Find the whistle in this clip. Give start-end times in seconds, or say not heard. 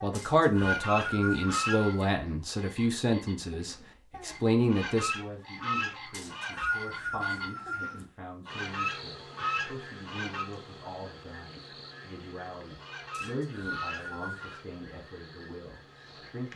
0.1-2.0, 6.1-8.1, 13.1-14.6.